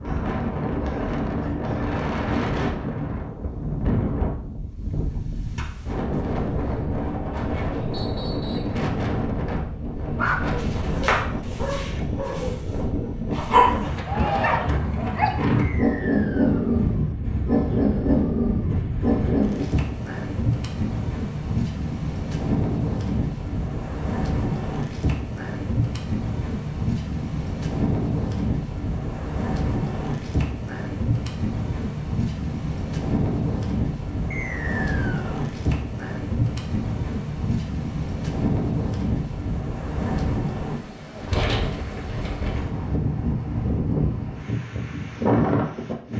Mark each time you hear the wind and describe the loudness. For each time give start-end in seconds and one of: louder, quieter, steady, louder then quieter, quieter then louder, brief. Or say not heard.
0.0-46.1 steady.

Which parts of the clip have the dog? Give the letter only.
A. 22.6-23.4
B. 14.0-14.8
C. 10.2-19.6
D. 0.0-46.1
C.